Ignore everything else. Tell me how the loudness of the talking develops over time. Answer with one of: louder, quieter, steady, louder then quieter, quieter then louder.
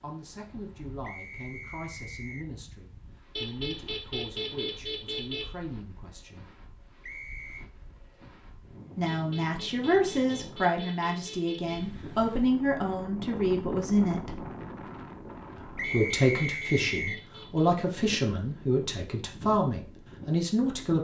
louder.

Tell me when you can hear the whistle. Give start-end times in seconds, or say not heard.
1.0-2.5, 7.0-7.7, 15.8-17.2.